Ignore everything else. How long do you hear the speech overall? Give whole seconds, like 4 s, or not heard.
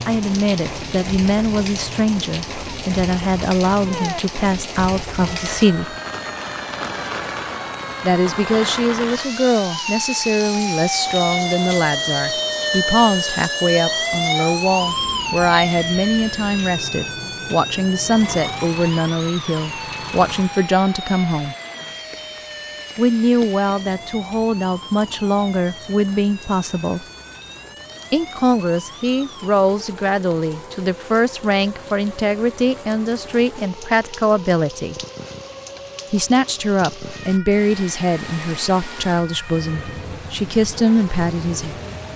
36 s.